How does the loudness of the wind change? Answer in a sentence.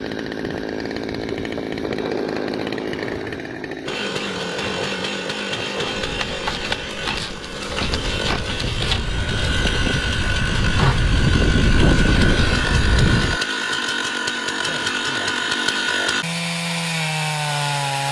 The volume of the wind goes up.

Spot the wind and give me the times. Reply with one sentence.
The wind can be heard from 0.2 to 13.4 s.